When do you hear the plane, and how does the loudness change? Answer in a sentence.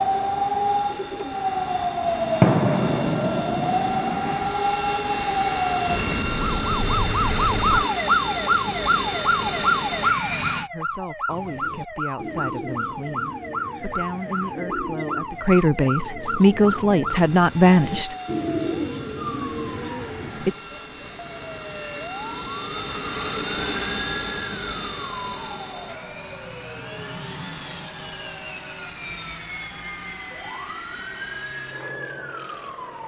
You can hear the plane from 0.0 to 10.7 s, getting louder; and from 17.1 to 33.0 s, getting louder then quieter.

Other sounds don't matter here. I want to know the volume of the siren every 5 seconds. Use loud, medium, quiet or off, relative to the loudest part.
loud, loud, medium, medium, quiet, quiet, quiet.